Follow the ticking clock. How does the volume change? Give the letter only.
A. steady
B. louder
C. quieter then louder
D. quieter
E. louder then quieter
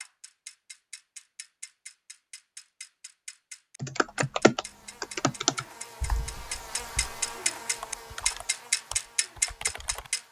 B.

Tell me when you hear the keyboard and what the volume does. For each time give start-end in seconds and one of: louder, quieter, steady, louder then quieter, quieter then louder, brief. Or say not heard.
3.8-10.1 quieter then louder.